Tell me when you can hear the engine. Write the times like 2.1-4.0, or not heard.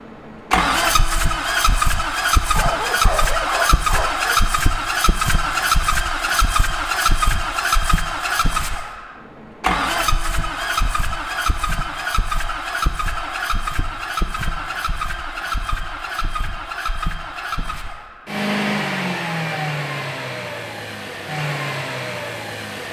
0.0-22.8.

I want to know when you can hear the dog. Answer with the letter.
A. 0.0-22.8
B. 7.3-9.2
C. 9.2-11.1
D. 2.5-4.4
D.